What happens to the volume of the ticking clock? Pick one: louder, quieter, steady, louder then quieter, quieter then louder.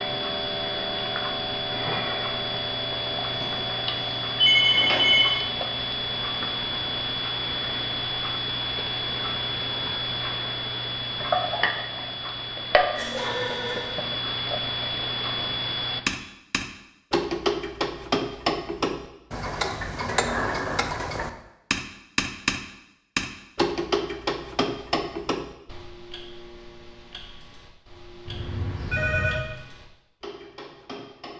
quieter.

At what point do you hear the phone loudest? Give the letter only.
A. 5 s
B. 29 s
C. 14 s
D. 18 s
A.